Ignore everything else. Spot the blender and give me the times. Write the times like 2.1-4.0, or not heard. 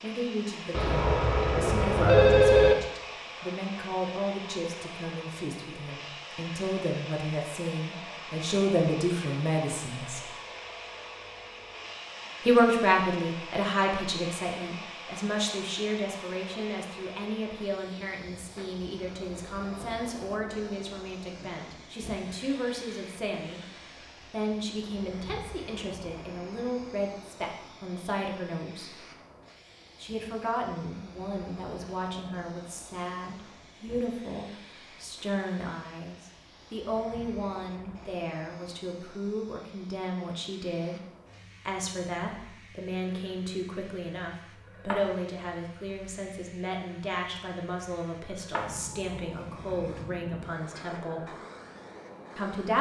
not heard.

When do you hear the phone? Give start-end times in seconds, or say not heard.
0.7-2.8.